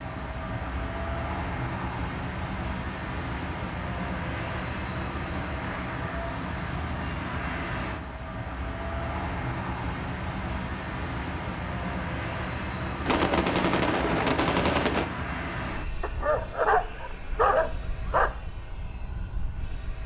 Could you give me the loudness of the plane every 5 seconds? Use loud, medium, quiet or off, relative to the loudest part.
loud, loud, loud, medium.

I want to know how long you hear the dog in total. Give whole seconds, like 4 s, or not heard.
2 s.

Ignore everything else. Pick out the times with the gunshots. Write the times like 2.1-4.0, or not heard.
13.1-15.1.